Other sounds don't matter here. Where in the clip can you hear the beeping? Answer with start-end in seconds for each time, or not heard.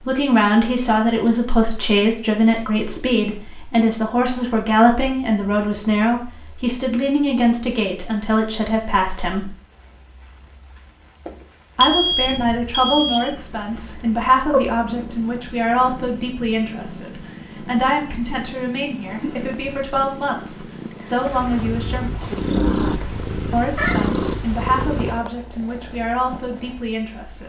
11.8-13.3.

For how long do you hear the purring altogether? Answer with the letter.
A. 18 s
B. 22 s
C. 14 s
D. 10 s
C.